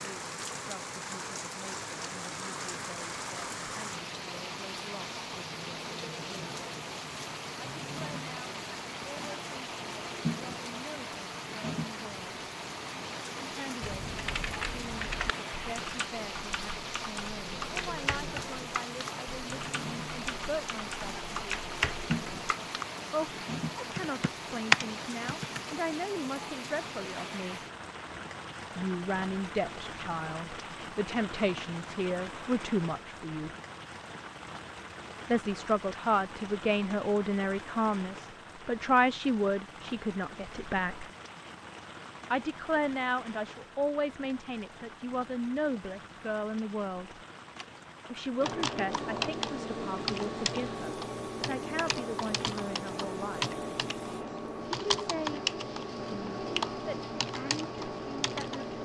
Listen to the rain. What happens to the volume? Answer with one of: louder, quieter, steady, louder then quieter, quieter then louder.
quieter.